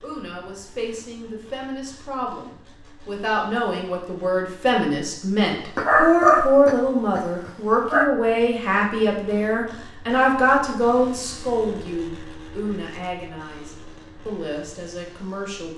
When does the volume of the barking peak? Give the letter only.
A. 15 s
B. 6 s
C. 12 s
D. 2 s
B.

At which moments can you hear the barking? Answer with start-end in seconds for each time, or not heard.
5.8-8.1.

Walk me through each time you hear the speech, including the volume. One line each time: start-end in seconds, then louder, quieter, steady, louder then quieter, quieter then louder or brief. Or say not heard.
0.0-15.7 louder then quieter.